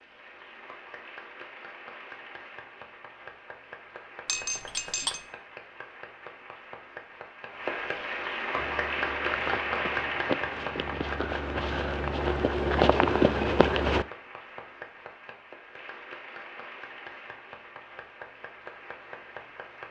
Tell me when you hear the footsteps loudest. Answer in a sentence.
The loudest moment of the footsteps is at 13 seconds.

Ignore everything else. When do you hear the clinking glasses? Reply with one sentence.
The clinking glasses can be heard from 4.2 to 5.2 s.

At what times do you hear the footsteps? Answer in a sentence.
The footsteps can be heard from 8.6 to 14.1 s.